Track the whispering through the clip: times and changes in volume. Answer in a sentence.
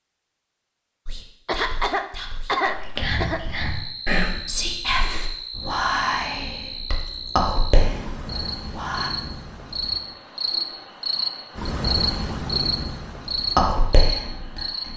The whispering can be heard from 1.1 to 9.1 s, getting louder; and briefly from 13.4 to 14.9 s.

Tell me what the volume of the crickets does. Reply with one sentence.
The volume of the crickets goes up.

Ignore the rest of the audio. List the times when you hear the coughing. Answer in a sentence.
The coughing can be heard from 1.4 to 3.4 s.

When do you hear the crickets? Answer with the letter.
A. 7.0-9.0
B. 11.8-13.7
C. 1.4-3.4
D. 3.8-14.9
D.